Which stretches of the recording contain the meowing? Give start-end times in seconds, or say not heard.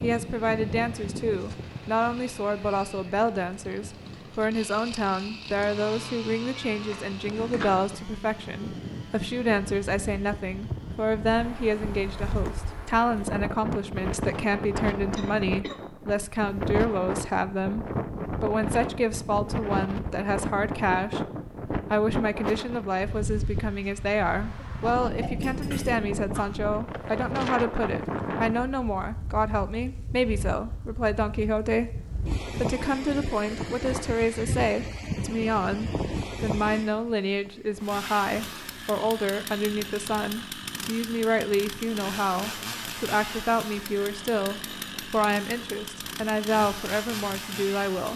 6.5-7.7.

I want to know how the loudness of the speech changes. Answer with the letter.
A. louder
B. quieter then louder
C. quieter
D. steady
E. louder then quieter
D.